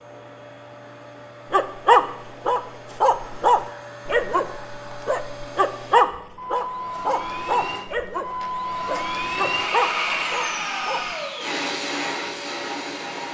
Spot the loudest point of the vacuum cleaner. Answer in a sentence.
The volume of the vacuum cleaner peaks at 10 seconds.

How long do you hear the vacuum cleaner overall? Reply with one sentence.
The vacuum cleaner can be heard for 13 seconds in total.